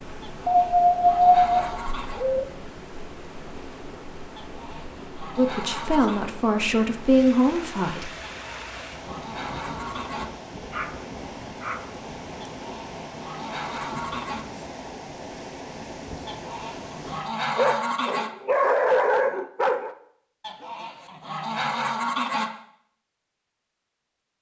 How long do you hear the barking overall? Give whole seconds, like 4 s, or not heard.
6 s.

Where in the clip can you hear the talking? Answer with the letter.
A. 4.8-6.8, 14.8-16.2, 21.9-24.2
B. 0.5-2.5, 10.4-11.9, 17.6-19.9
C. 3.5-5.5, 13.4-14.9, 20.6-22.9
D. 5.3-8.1
D.